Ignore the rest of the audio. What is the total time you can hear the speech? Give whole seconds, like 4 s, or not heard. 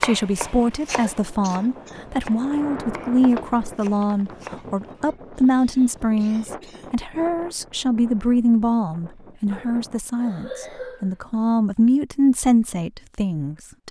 14 s.